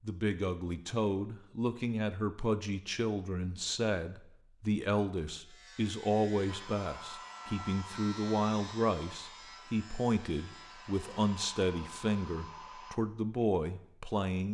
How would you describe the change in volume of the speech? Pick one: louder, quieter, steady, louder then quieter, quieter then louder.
steady.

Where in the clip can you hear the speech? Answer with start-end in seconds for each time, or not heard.
0.0-14.4.